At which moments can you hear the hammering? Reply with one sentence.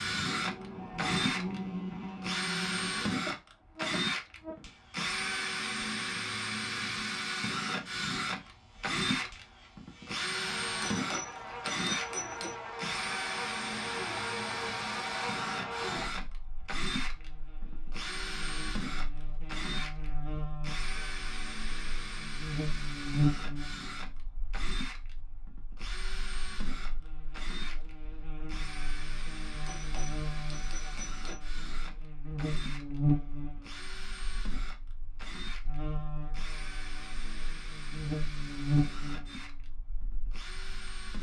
The hammering can be heard from 10.8 to 12.6 s and from 29.6 to 31.4 s.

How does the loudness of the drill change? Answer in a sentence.
The volume of the drill goes down.